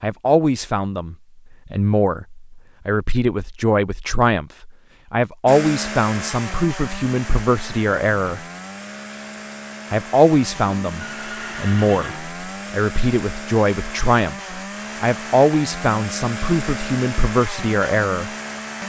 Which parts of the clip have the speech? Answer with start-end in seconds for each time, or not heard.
0.0-8.4, 9.9-18.3.